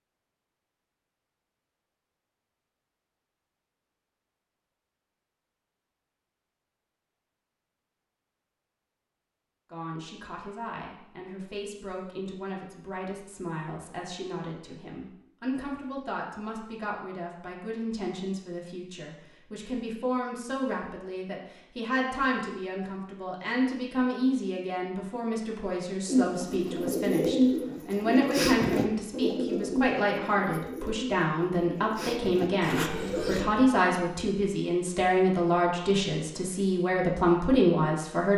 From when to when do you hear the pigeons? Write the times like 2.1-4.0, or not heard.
26.1-33.5.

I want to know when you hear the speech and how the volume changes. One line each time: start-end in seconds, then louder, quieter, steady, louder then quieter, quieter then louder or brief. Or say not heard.
9.7-38.3 louder.